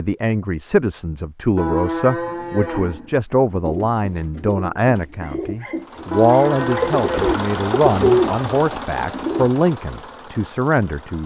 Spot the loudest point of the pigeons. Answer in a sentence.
The loudest moment of the pigeons is at 8 seconds.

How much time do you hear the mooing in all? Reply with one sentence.
The mooing can be heard for 3 seconds in total.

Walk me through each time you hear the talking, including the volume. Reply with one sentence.
The talking can be heard from 0.0 to 11.2 s, at a steady volume.